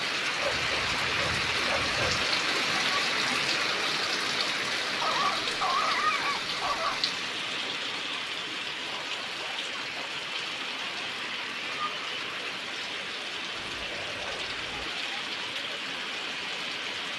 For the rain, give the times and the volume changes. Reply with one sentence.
The rain can be heard from 0.0 to 17.1 s, getting quieter.